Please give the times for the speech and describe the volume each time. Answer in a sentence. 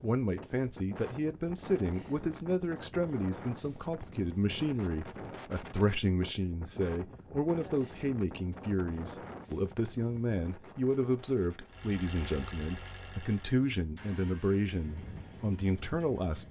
You can hear the speech from 0.0 to 16.4 s, at a steady volume.